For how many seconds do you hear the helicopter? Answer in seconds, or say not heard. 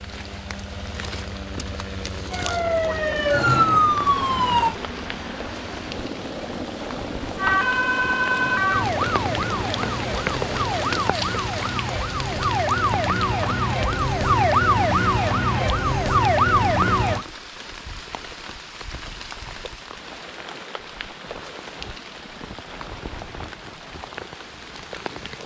11 s.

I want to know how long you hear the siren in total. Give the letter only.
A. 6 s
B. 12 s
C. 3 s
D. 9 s
B.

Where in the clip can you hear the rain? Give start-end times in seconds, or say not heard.
0.0-25.4.